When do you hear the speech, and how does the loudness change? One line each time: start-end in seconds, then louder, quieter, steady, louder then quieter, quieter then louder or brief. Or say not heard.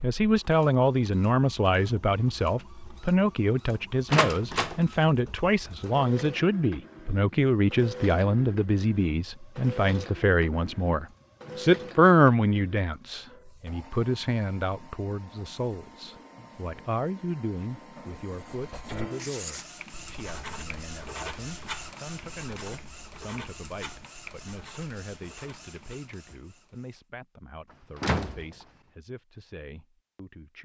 0.0-30.5 quieter.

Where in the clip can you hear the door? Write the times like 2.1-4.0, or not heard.
4.1-4.8, 27.9-28.6.